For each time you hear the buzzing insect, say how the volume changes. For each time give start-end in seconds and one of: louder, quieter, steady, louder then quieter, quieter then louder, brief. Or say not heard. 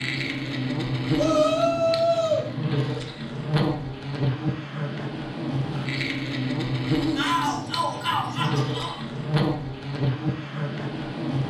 0.0-11.4 steady.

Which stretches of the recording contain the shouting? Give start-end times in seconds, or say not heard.
1.1-2.4, 7.2-9.0.